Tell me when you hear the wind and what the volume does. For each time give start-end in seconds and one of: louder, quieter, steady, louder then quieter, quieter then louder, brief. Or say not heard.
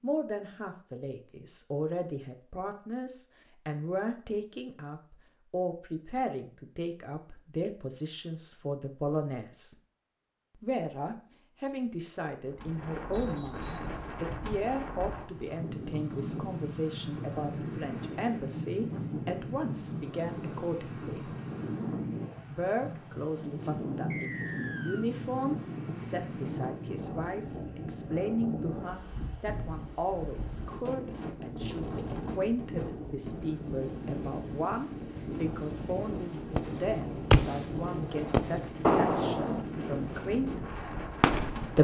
12.4-41.7 steady.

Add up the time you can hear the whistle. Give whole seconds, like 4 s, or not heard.
2 s.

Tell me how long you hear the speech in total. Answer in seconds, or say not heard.
40 s.